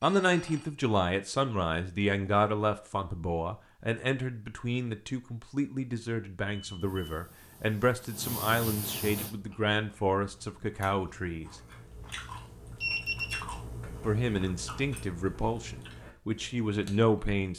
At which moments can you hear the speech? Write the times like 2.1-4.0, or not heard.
0.0-11.6, 14.0-17.5.